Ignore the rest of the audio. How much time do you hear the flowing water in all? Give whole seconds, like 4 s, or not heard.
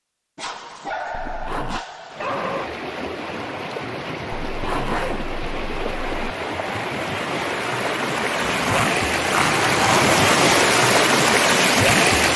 10 s.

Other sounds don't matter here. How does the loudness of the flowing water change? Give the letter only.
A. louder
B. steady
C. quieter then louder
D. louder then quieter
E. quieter
A.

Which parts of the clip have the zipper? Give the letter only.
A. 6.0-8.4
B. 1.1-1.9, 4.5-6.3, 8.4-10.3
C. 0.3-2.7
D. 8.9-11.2
B.